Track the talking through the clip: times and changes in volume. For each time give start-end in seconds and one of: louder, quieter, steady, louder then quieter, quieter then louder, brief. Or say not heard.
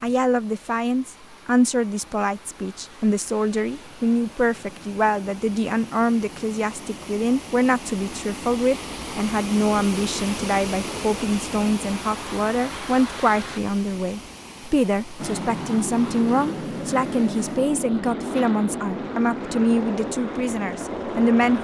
0.0-21.5 steady.